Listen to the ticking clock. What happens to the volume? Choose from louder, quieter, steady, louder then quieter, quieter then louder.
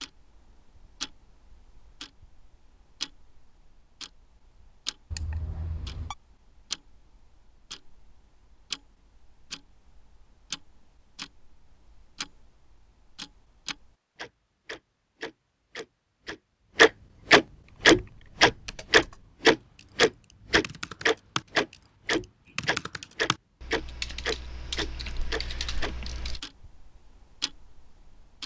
louder then quieter.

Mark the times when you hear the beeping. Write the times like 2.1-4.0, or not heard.
5.1-6.2.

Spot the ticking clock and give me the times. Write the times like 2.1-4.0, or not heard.
0.0-28.4.